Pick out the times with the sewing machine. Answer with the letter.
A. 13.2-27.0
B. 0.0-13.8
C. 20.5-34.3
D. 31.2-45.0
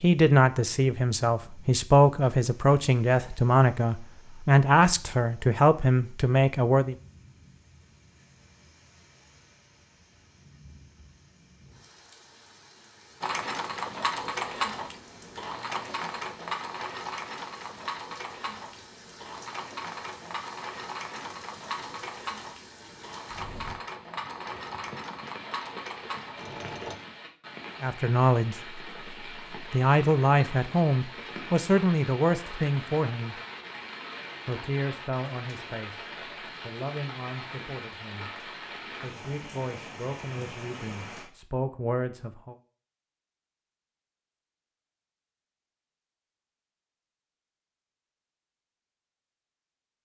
A.